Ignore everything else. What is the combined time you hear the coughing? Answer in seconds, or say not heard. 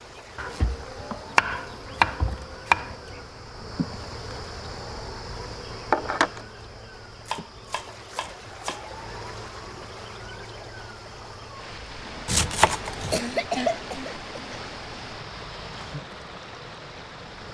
2 s.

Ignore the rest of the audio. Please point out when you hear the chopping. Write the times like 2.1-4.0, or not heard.
0.3-3.1, 7.2-8.8, 12.2-13.2.